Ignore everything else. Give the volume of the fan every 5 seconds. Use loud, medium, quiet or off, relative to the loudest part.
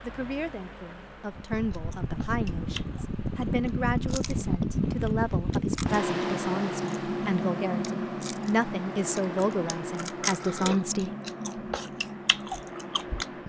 loud, loud, medium.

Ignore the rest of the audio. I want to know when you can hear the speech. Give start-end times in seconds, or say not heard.
0.0-11.1.